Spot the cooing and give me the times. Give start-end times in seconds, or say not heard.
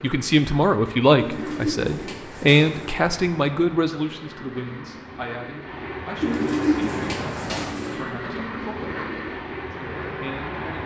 1.1-3.0, 6.2-8.0.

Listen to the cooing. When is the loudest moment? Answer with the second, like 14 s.
7 s.